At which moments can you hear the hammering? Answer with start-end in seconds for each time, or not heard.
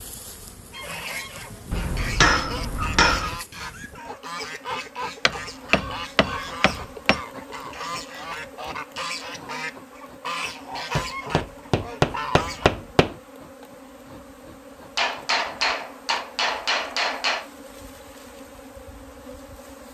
1.7-3.4, 5.2-7.2, 10.9-13.2, 14.9-17.4.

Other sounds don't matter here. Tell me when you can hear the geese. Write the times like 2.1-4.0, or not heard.
0.7-12.7.